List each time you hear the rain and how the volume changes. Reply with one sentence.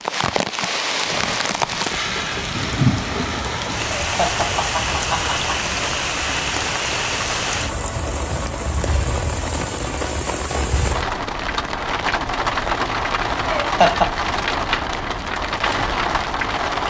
You can hear the rain from 0.0 to 16.8 s, at a steady volume.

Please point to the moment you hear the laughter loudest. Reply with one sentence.
The loudest moment of the laughter is at 14 seconds.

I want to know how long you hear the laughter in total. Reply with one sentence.
You can hear the laughter for 2 seconds altogether.